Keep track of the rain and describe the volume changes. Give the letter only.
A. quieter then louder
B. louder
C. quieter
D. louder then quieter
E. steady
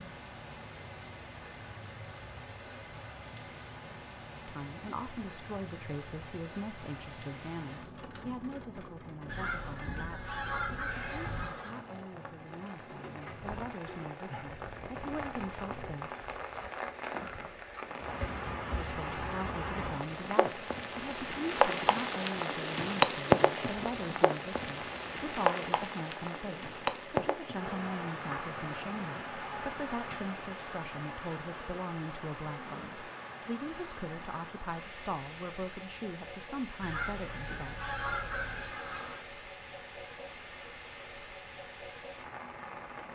D.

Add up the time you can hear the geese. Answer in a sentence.
You can hear the geese for 5 seconds altogether.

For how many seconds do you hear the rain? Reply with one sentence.
You can hear the rain for 43 seconds altogether.